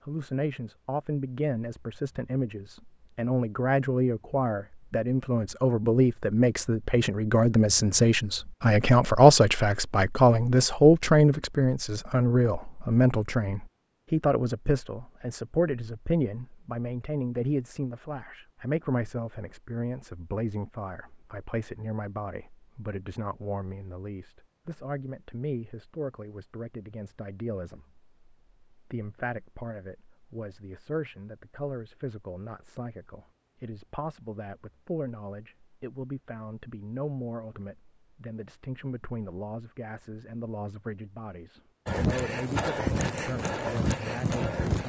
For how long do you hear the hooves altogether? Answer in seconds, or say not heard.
3 s.